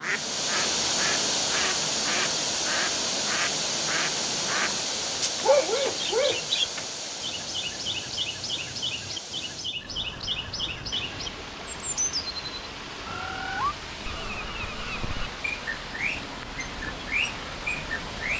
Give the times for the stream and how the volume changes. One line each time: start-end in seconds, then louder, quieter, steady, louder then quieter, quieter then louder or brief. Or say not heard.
0.0-18.3 quieter.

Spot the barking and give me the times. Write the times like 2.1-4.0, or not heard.
5.3-6.8.